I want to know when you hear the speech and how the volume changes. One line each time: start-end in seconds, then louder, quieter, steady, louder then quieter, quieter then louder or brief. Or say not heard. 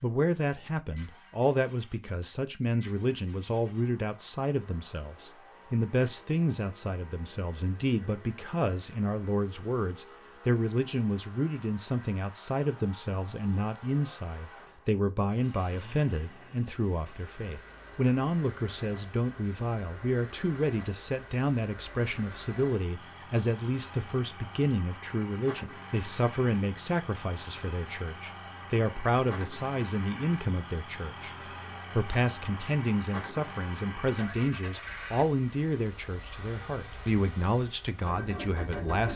0.0-39.1 steady.